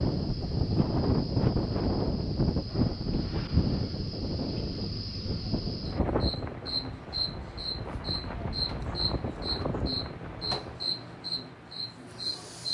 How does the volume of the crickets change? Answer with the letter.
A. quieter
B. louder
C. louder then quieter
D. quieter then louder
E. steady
B.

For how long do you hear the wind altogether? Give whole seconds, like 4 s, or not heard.
11 s.